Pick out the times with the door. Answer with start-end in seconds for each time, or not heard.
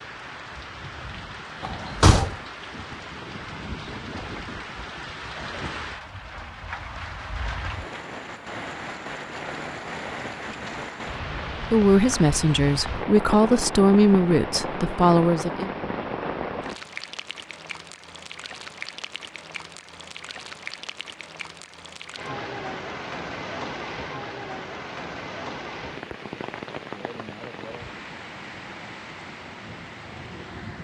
1.6-2.4.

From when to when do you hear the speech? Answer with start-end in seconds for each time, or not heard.
11.7-15.7.